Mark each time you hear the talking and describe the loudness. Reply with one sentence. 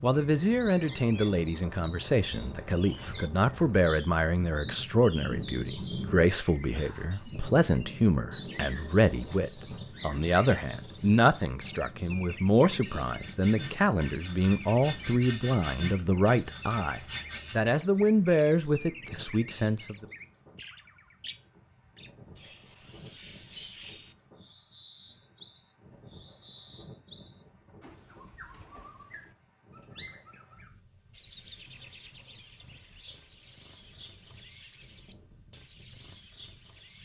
You can hear the talking from 0.0 to 20.1 s, at a steady volume.